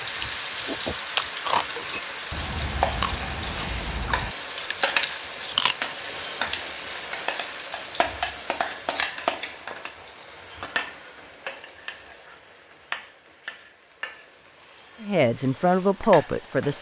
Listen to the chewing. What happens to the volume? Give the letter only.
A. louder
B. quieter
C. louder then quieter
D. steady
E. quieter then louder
E.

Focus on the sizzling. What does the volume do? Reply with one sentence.
The loudness of the sizzling goes down.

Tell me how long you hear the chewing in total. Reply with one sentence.
The chewing can be heard for 6 seconds in total.